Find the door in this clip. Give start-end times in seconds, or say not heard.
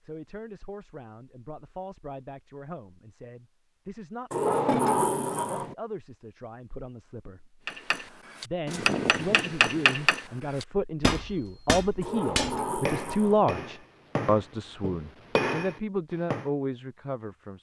4.3-5.8, 12.0-13.4.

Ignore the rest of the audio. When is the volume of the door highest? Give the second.
5 s.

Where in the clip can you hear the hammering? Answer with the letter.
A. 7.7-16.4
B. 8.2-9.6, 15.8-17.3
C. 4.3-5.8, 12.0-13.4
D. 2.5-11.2
A.